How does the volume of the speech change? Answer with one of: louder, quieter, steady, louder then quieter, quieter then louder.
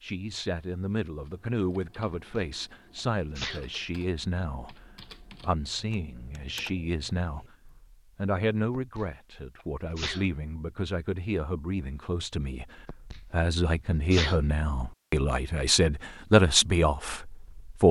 louder.